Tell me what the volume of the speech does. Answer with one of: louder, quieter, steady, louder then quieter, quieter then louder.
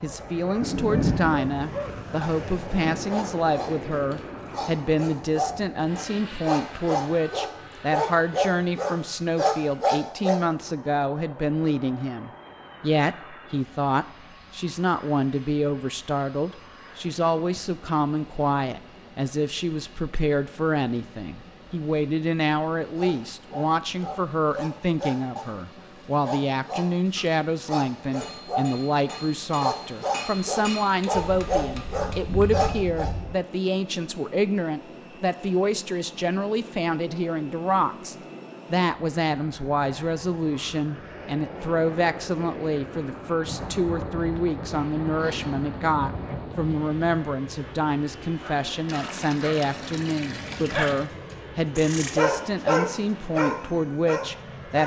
steady.